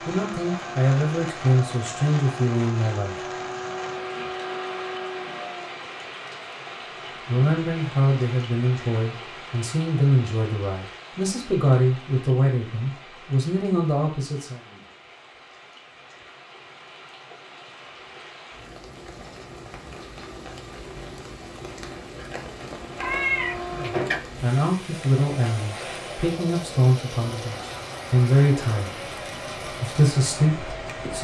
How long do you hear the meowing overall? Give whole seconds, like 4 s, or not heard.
2 s.